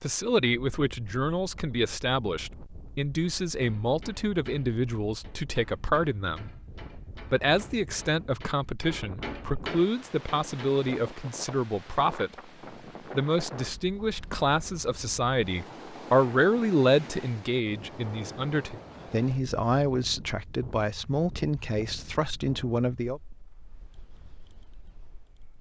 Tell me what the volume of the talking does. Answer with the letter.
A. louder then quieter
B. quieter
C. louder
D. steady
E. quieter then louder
D.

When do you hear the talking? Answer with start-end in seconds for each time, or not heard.
0.0-6.5, 7.3-12.3, 13.2-23.2.